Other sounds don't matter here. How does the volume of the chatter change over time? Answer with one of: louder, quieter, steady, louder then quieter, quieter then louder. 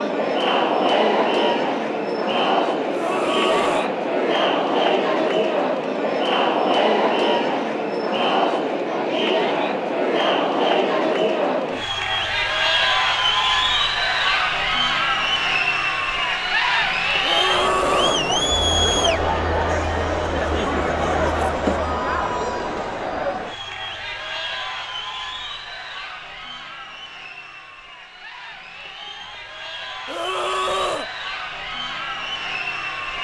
quieter.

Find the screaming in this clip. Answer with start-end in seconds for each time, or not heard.
2.9-4.0, 17.2-18.2, 30.1-31.1.